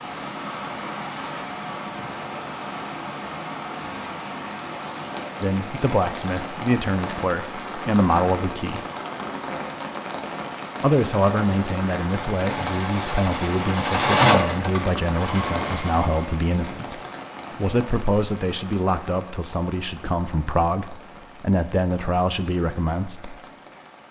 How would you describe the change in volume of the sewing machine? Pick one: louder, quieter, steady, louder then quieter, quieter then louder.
louder then quieter.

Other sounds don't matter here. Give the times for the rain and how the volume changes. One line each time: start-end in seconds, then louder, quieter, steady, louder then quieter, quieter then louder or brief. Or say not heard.
0.0-24.0 quieter.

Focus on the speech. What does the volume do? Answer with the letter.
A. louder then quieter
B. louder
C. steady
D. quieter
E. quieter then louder
C.